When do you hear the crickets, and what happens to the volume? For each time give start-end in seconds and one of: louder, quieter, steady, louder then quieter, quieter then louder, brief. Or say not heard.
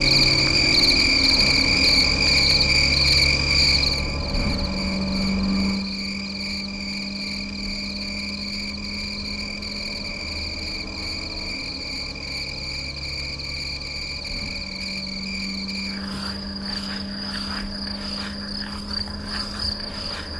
0.0-20.3 quieter.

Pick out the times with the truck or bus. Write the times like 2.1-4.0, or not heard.
0.0-20.3.